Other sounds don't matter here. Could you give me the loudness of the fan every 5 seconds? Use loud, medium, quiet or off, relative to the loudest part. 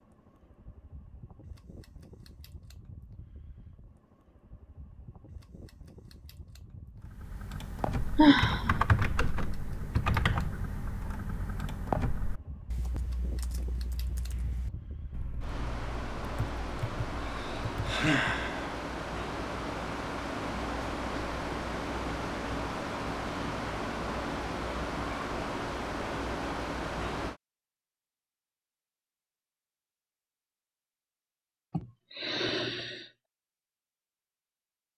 quiet, quiet, quiet, loud, loud, loud, off.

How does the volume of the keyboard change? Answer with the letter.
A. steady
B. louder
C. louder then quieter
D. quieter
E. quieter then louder
E.